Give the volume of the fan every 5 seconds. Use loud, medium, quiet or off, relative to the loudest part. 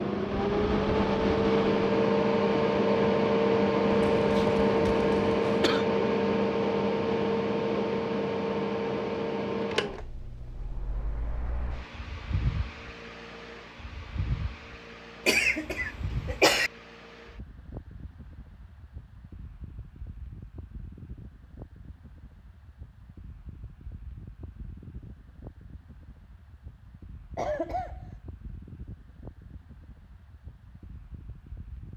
loud, loud, quiet, quiet, quiet, quiet, quiet.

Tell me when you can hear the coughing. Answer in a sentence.
The coughing can be heard from 4.1 to 5.8 s, from 15.2 to 16.7 s and from 27.4 to 28.1 s.